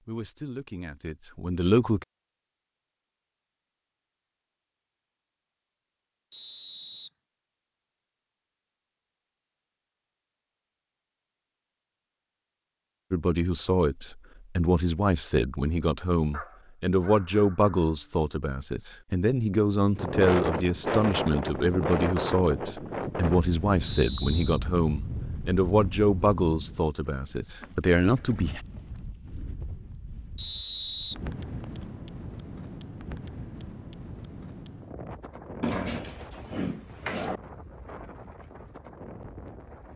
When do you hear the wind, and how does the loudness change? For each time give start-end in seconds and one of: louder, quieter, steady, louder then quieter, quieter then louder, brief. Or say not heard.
19.9-39.9 quieter.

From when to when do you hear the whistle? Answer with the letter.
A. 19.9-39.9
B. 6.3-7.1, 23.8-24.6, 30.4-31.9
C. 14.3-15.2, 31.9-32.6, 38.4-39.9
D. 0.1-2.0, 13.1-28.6
B.